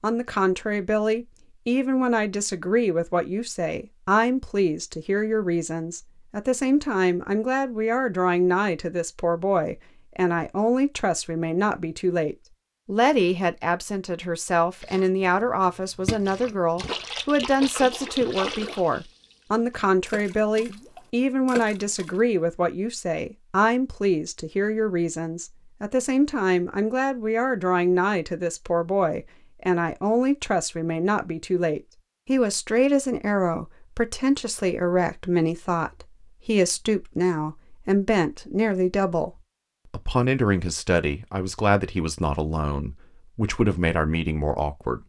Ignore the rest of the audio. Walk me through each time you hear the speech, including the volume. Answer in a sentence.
The speech can be heard from 0.0 to 45.0 s, at a steady volume.